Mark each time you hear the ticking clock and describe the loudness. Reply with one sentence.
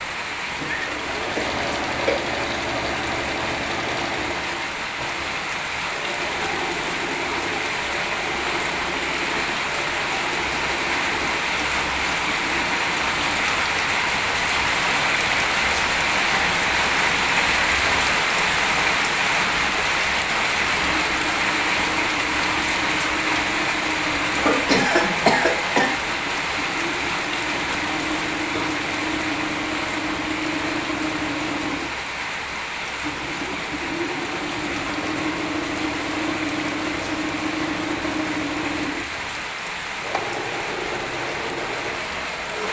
You can't hear the ticking clock here.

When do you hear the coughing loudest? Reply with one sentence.
The loudest moment of the coughing is at 25 seconds.